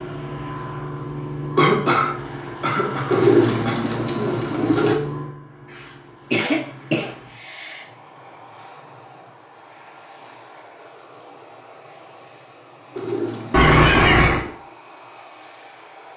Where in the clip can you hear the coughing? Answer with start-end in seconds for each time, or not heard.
1.6-3.8, 5.7-7.8, 13.5-14.4.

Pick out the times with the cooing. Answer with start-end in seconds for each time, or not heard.
3.1-5.0, 12.9-14.6.